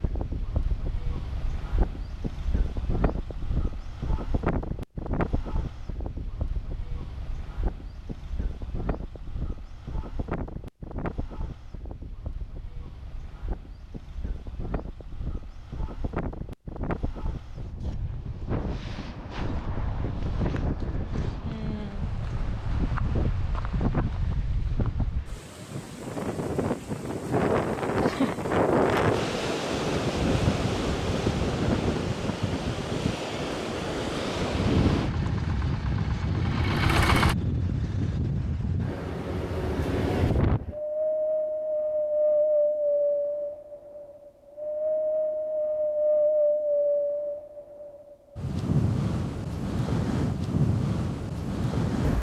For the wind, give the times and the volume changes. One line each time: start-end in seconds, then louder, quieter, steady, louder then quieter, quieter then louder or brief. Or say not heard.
0.0-52.1 louder.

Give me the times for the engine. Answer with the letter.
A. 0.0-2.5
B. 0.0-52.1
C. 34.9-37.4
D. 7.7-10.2
C.